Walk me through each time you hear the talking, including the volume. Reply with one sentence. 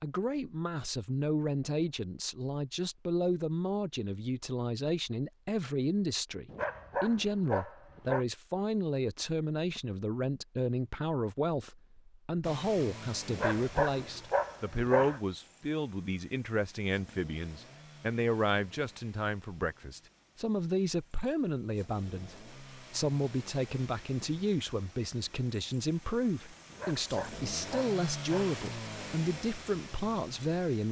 You can hear the talking from 0.0 to 30.8 s, at a steady volume.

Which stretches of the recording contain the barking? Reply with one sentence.
You can hear the barking from 6.5 to 8.2 s, from 13.3 to 15.2 s and from 26.7 to 28.6 s.